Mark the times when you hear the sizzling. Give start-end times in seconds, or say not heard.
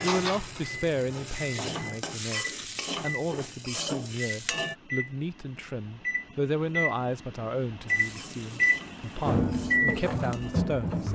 0.0-4.8, 7.8-11.1.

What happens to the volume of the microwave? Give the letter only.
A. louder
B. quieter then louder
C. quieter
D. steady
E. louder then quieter
A.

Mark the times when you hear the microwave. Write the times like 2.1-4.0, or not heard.
0.0-11.1.